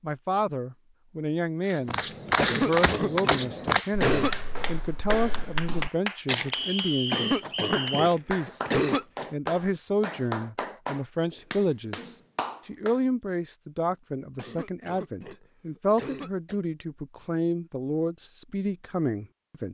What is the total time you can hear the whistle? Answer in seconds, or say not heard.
2 s.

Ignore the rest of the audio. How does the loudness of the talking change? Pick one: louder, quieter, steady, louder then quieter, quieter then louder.
steady.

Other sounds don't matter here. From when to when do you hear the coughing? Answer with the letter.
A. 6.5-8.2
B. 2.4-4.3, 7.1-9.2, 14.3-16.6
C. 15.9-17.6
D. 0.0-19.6
B.